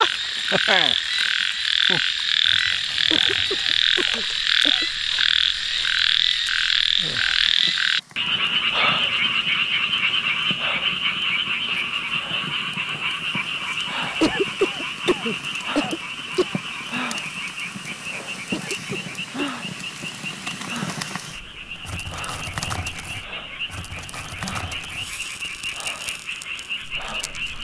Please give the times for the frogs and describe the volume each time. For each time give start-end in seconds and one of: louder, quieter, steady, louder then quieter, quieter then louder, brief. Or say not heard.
0.0-27.5 quieter.